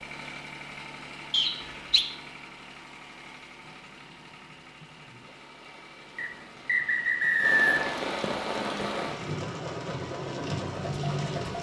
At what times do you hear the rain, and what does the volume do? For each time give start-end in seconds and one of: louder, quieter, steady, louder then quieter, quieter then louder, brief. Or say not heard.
3.6-11.5 louder.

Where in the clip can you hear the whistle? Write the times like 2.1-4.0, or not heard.
1.3-2.0, 6.2-8.0.